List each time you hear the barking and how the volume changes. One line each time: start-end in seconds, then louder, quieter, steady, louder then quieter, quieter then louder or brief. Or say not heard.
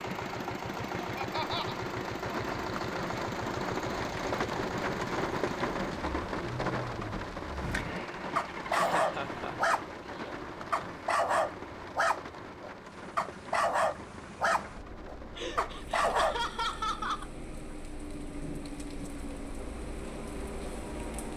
7.5-16.4 steady.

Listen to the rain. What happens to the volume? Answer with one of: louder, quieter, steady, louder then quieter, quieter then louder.
quieter.